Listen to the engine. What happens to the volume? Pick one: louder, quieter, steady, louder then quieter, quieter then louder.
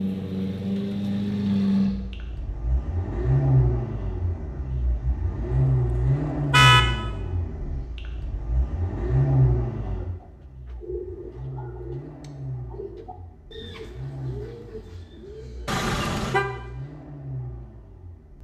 quieter.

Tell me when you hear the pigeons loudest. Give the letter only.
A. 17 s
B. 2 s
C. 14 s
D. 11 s
D.